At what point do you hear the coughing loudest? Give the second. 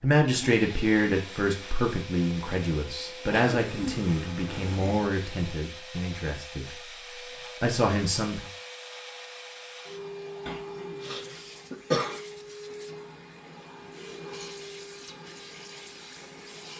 12 s.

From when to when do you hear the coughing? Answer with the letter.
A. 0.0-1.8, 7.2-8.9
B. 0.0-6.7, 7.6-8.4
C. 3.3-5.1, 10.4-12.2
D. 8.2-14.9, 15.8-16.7
C.